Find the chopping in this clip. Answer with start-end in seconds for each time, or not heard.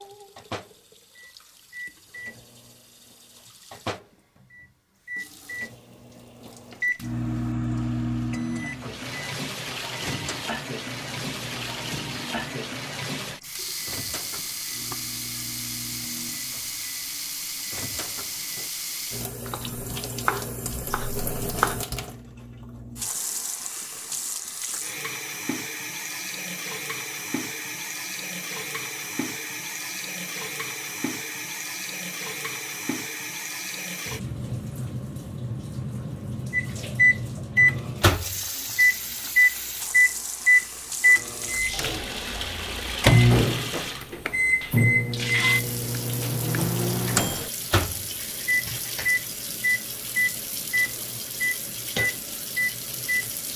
19.5-21.8.